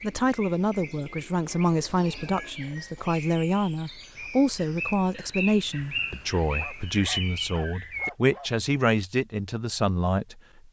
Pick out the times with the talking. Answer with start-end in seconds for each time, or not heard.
0.0-10.6.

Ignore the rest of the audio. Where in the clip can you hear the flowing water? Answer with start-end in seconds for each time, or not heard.
not heard.